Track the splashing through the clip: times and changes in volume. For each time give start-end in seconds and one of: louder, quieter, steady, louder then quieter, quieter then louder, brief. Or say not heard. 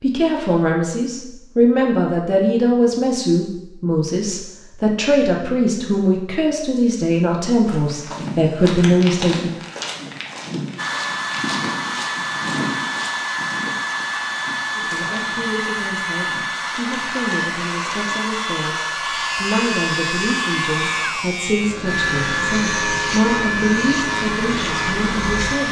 not heard.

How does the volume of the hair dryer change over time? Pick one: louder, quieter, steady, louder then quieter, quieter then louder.
steady.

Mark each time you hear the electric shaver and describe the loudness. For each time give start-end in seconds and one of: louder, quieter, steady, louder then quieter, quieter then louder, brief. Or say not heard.
18.9-25.6 steady.